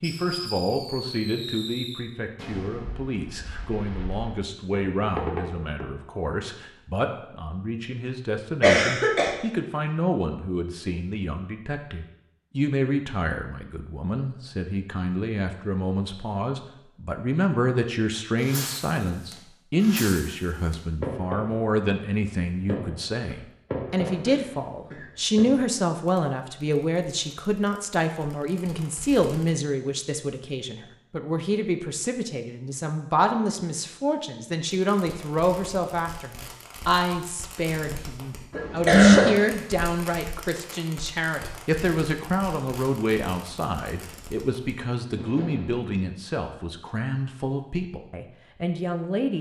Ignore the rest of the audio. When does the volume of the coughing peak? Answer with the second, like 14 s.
39 s.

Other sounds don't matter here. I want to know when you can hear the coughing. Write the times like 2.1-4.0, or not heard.
8.6-9.3, 24.1-25.1, 38.5-39.4.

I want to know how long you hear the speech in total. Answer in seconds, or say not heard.
49 s.